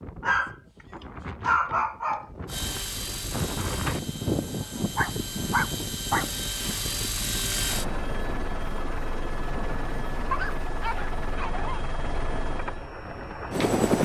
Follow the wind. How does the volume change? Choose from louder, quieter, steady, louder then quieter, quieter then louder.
louder then quieter.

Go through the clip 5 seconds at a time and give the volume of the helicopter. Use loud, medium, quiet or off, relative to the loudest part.
medium, loud, loud.